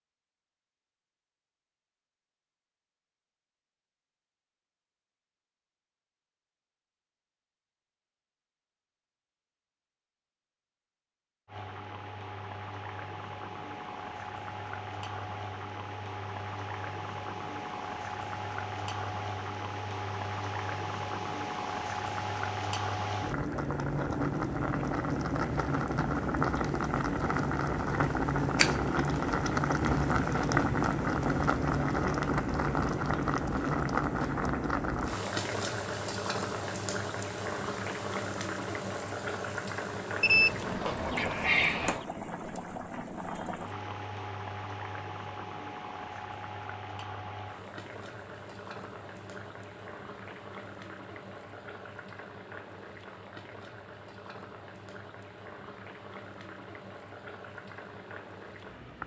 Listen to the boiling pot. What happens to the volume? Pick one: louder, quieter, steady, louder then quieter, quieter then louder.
louder then quieter.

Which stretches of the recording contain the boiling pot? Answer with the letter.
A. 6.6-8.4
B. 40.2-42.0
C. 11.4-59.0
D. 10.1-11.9
C.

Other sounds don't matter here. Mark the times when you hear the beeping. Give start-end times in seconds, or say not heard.
40.2-42.0.